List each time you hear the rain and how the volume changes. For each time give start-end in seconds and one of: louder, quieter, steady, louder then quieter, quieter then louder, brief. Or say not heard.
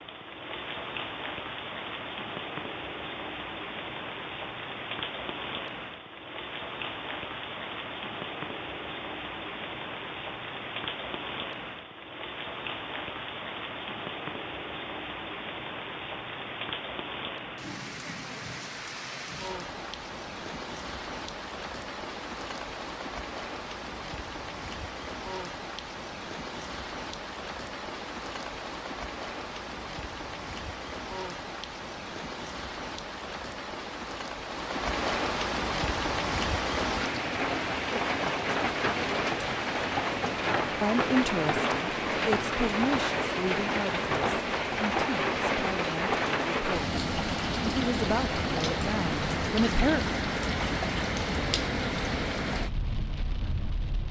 0.0-54.0 louder.